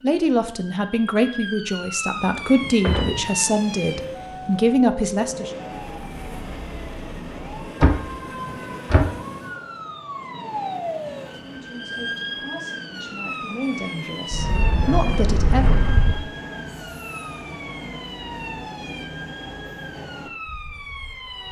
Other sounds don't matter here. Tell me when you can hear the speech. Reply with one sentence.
You can hear the speech from 0.0 to 5.5 s and from 11.3 to 15.8 s.